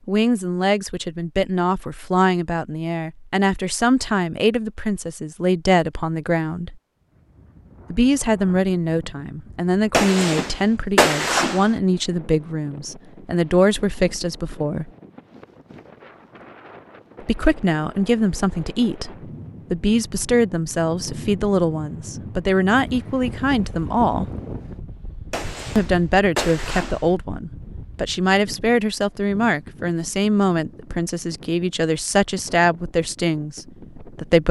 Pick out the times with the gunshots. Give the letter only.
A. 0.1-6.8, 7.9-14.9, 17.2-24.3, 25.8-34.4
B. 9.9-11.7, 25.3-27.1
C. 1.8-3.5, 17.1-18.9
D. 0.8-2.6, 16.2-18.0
B.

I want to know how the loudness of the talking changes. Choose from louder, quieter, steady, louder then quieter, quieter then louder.
steady.